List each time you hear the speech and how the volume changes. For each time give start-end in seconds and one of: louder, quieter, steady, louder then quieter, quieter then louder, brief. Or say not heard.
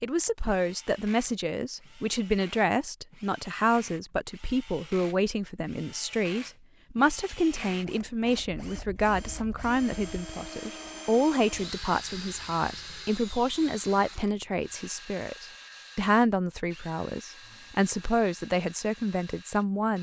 0.0-19.9 steady.